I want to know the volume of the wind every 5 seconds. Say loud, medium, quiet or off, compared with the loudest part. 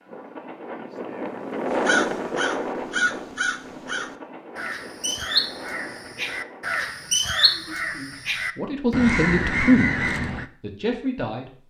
loud, medium, off.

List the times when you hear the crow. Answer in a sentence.
The crow can be heard from 1.6 to 10.4 s.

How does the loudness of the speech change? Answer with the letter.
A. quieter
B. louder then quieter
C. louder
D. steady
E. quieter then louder
B.